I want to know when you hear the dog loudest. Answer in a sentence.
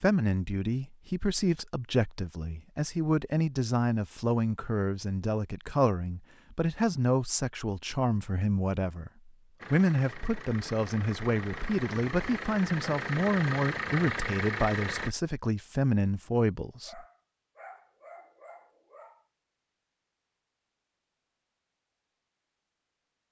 The loudest moment of the dog is at 18 seconds.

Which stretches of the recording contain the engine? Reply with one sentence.
The engine can be heard from 9.6 to 15.2 s.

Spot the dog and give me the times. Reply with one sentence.
The dog can be heard from 16.8 to 19.2 s.